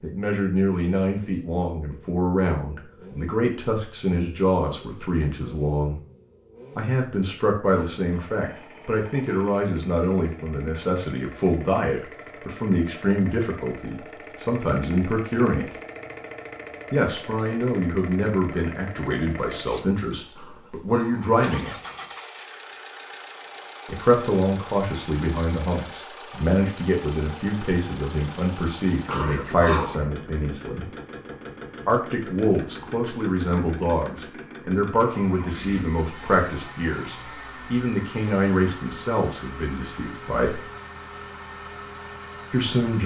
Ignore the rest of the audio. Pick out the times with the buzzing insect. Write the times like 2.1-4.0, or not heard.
not heard.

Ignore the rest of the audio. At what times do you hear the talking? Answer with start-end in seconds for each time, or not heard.
0.0-6.0, 6.8-15.7, 16.9-21.8, 23.9-30.9, 31.9-40.6, 42.5-43.0.